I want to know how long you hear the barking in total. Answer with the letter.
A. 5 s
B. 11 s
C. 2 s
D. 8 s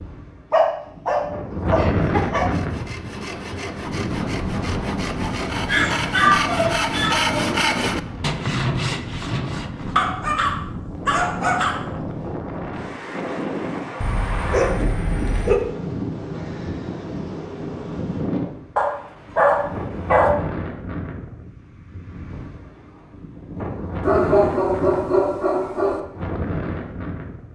B.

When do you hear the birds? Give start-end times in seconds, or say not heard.
not heard.